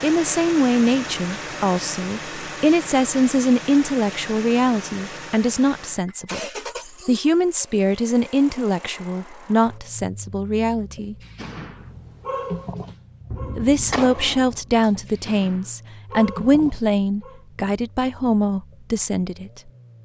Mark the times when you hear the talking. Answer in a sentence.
The talking can be heard from 0.0 to 6.4 s, from 7.0 to 11.2 s and from 13.6 to 19.7 s.